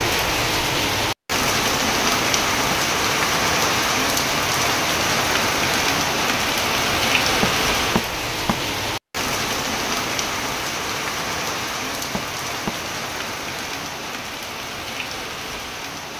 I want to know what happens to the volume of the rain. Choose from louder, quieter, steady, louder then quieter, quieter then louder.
quieter.